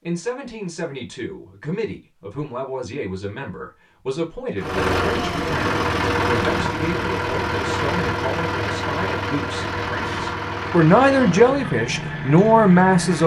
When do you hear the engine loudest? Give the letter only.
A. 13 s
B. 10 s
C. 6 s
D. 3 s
C.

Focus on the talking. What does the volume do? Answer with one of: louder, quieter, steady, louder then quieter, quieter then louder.
louder.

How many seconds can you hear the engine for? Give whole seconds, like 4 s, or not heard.
9 s.